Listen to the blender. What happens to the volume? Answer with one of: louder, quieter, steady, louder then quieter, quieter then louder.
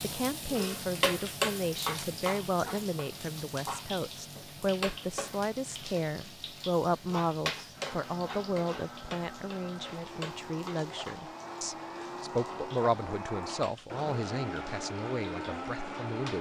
louder.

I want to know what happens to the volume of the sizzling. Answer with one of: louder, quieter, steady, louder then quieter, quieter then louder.
quieter.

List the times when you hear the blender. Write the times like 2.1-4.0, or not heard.
7.7-16.3.